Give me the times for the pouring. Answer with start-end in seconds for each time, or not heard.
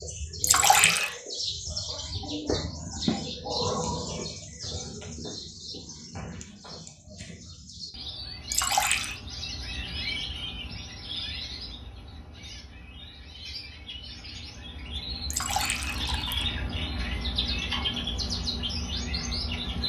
0.4-1.1, 8.5-9.2, 15.3-16.5.